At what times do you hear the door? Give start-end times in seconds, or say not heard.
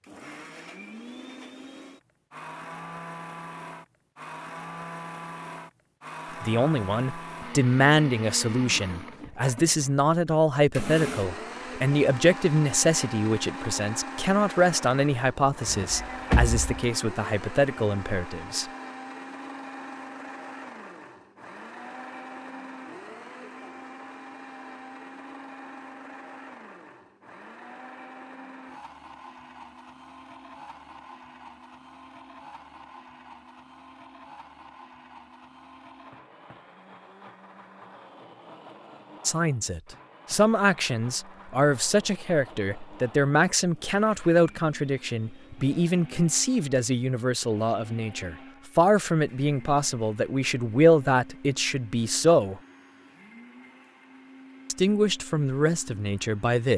15.7-16.9.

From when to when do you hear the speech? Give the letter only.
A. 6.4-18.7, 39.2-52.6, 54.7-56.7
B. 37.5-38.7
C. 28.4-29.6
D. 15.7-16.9
A.